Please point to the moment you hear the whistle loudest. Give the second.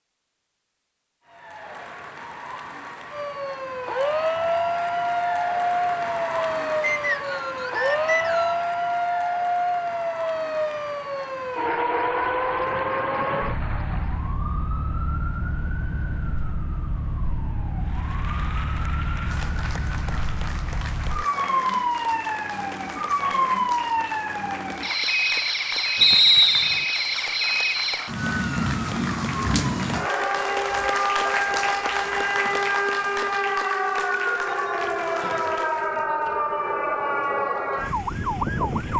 26 s.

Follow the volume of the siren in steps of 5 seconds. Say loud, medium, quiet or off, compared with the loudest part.
loud, loud, loud, medium, loud, loud, loud, loud.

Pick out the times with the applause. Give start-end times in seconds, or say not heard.
1.2-14.4, 17.8-36.0.